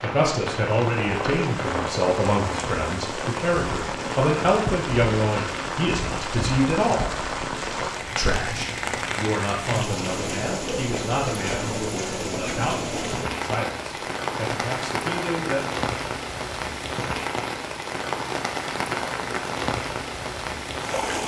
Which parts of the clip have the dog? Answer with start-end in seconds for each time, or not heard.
not heard.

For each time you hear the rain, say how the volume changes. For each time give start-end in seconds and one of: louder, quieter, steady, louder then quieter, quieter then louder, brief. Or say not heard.
0.0-21.2 steady.